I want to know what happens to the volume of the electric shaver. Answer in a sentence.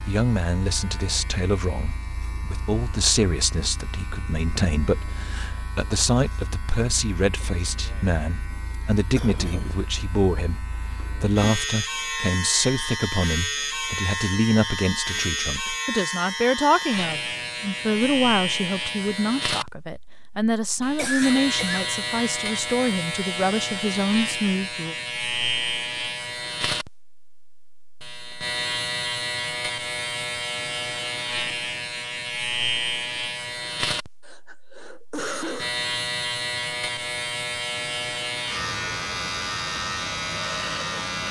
The volume of the electric shaver goes up.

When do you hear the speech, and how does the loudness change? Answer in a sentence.
You can hear the speech from 0.0 to 24.9 s, at a steady volume.